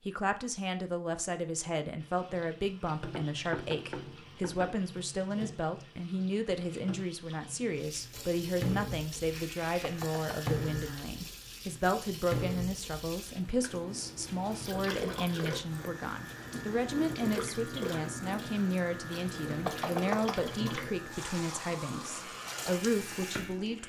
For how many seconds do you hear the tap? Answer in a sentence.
You can hear the tap for 22 seconds altogether.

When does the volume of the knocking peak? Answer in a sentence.
The volume of the knocking peaks at 20 seconds.